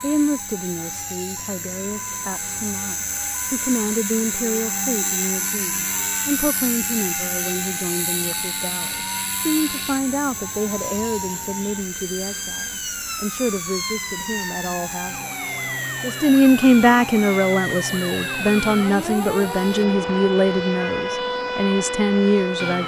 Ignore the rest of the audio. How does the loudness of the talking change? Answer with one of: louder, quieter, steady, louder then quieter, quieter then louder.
louder.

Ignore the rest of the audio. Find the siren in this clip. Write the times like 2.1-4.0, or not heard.
0.1-22.8.